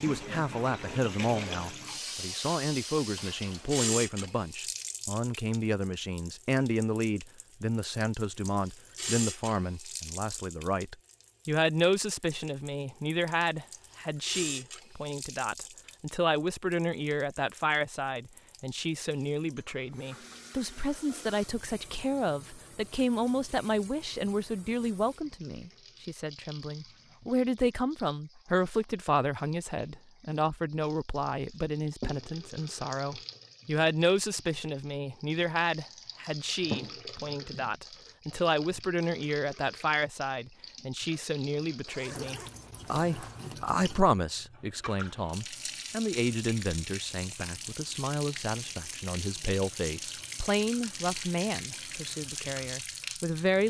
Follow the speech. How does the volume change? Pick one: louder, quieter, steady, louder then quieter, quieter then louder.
steady.